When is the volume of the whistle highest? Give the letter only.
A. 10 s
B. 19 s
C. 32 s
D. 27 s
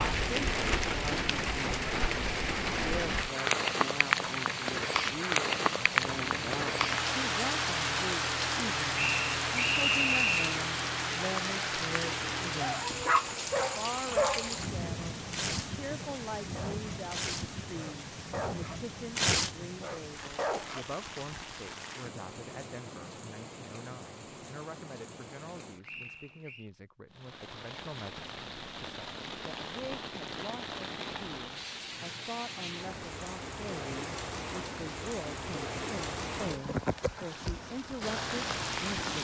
A.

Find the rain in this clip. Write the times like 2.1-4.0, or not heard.
0.0-39.1.